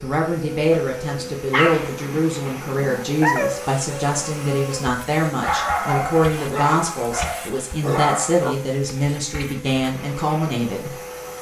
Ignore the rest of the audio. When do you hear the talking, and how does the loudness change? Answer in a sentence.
You can hear the talking from 0.0 to 10.9 s, at a steady volume.